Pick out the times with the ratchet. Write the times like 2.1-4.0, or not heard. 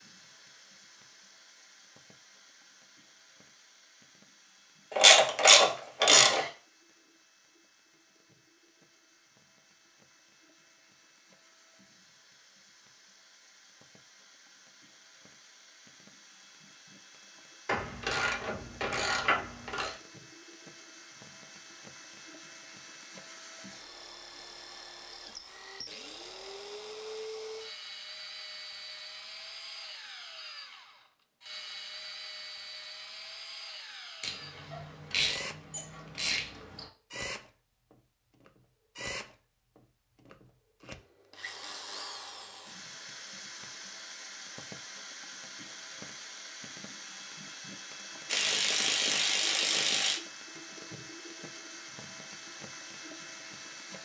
5.0-6.5, 17.6-19.9, 34.2-36.9, 48.2-50.2.